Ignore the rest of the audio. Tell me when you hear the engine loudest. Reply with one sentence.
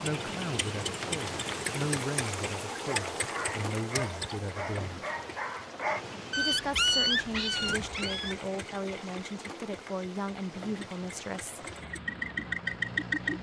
The loudest moment of the engine is at 13 seconds.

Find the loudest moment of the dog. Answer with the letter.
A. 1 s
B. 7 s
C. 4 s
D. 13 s
B.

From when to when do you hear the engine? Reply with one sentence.
You can hear the engine from 0.0 to 5.5 s and from 7.5 to 13.3 s.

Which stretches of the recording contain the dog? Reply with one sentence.
The dog can be heard from 2.8 to 8.3 s.